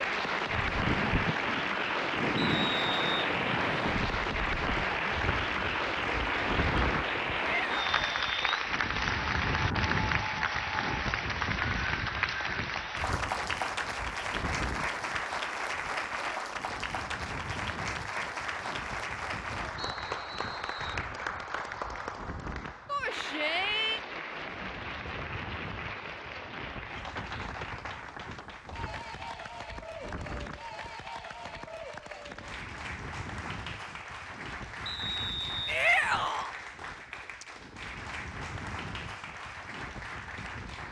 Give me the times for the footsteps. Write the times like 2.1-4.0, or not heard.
not heard.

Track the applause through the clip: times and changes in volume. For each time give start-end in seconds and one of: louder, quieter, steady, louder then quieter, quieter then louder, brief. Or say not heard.
0.0-40.8 quieter.